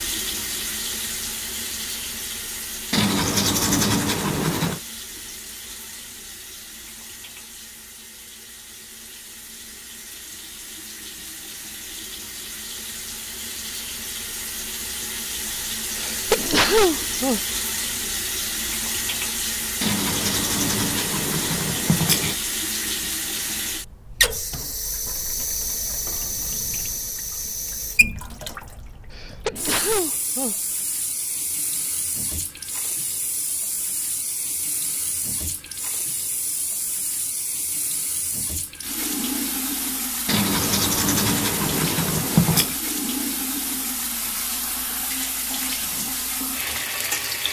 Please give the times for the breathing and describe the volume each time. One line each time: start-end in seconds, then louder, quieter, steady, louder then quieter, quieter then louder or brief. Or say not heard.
not heard.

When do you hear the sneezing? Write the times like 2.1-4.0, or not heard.
15.9-17.4, 29.1-30.6.